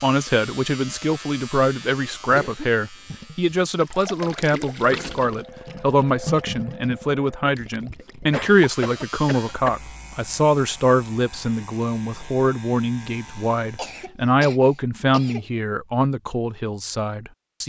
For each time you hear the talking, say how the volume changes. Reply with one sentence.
The talking can be heard from 0.0 to 17.6 s, at a steady volume.